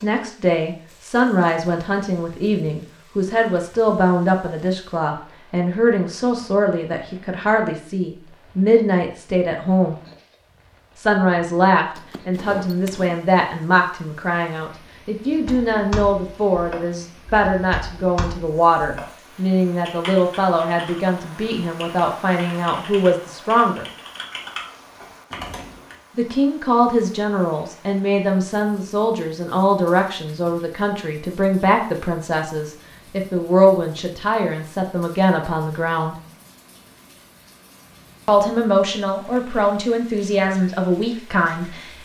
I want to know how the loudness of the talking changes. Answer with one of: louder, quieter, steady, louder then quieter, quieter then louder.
steady.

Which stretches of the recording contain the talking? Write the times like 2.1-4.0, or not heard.
0.0-9.9, 10.9-23.9, 26.1-36.1, 38.2-42.0.